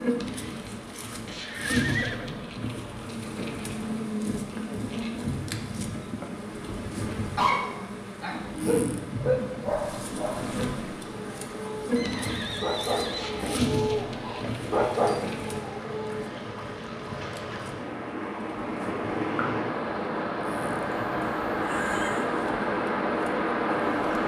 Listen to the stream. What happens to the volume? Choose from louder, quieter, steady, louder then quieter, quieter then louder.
louder.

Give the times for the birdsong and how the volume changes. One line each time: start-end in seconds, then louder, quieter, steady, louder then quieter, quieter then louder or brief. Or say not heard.
not heard.